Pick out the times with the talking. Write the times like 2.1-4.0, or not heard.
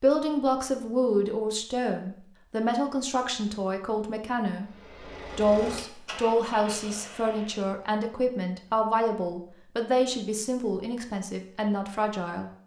0.0-4.7, 5.3-12.5.